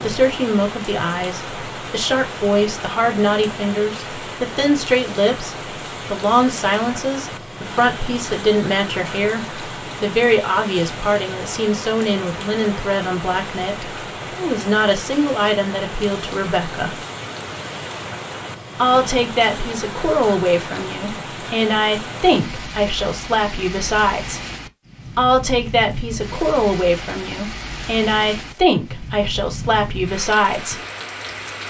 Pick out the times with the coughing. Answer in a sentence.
You can't hear the coughing here.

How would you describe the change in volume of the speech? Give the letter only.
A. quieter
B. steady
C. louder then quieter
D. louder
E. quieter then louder
B.